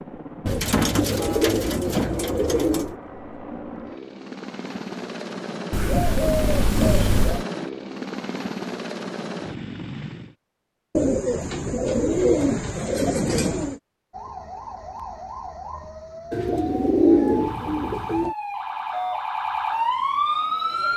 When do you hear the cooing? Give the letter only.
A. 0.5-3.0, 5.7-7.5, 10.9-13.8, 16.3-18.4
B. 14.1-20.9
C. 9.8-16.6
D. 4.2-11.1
A.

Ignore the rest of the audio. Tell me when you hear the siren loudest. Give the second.
20 s.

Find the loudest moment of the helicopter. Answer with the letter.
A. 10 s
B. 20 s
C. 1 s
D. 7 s
D.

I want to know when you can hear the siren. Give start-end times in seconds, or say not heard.
14.1-20.9.